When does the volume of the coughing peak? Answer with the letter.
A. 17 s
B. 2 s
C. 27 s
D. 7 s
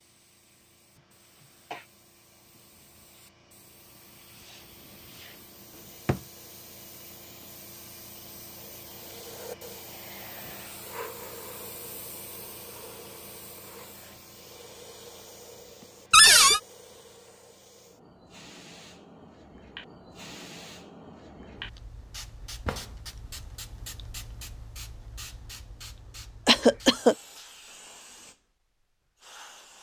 C.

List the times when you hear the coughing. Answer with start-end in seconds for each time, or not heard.
0.9-1.9, 15.8-16.6, 26.4-27.1.